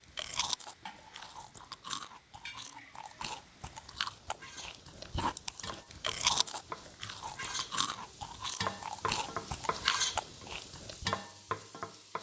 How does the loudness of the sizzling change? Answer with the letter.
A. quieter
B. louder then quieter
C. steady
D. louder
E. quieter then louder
D.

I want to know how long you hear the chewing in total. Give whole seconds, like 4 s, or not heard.
11 s.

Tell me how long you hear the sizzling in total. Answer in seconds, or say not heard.
12 s.